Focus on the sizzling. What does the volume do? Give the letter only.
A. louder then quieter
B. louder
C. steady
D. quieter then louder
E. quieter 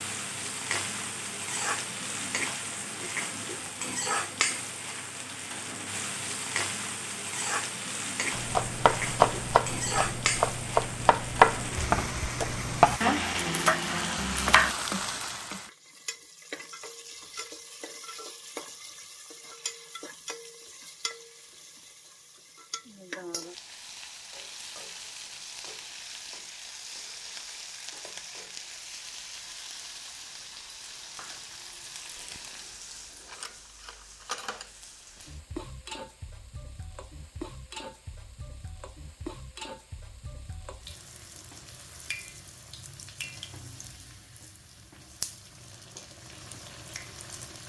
E.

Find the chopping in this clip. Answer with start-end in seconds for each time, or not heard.
8.3-14.8.